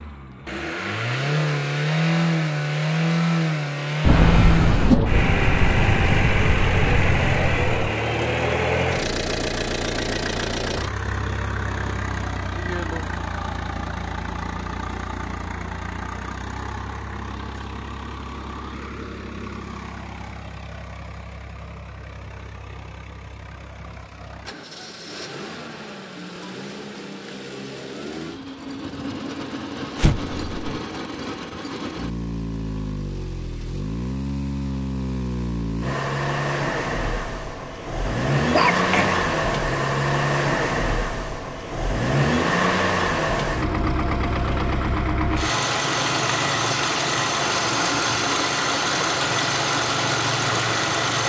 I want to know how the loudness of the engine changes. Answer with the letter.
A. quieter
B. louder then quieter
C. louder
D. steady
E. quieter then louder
E.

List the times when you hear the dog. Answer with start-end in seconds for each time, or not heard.
38.0-39.2.